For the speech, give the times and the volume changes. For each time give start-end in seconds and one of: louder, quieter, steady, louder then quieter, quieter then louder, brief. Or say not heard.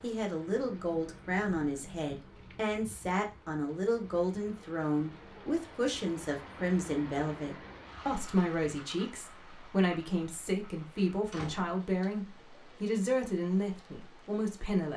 0.0-14.9 steady.